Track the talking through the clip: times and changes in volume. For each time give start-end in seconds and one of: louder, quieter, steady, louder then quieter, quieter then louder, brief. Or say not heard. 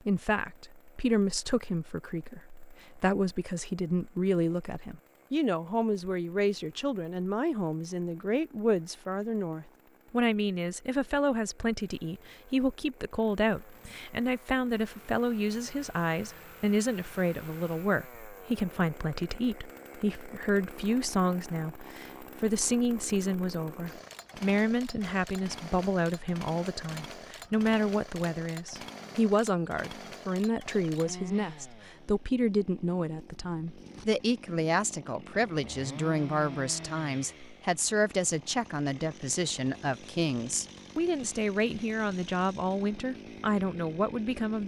0.1-44.6 steady.